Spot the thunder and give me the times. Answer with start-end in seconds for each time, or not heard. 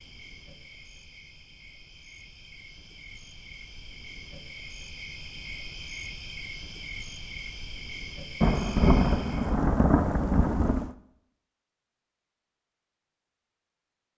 8.4-10.9.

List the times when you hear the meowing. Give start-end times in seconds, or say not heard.
not heard.